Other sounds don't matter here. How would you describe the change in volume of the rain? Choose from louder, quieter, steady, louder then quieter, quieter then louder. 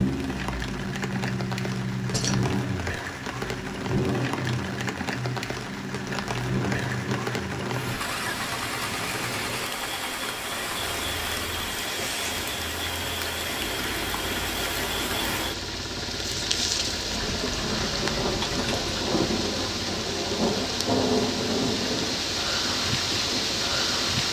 louder.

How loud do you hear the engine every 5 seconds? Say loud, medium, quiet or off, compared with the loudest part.
loud, loud, medium, medium, medium.